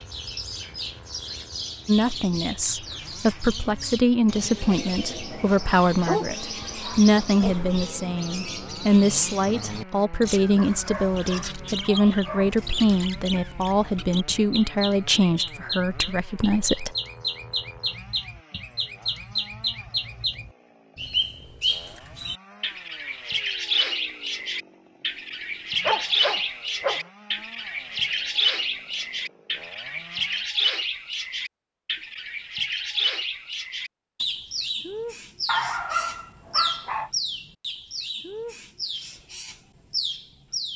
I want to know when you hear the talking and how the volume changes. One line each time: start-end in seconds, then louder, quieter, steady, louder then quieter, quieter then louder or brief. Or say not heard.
1.9-16.9 steady.